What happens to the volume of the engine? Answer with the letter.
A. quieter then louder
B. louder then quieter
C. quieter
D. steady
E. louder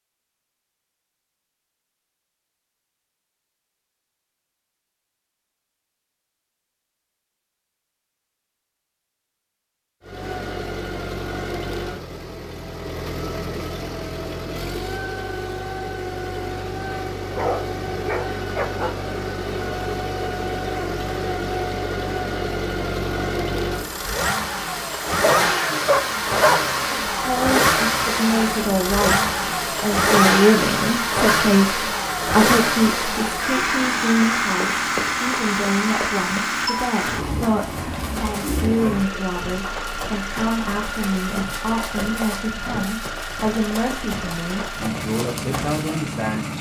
B.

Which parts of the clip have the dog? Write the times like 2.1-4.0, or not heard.
16.9-18.9, 25.2-26.7.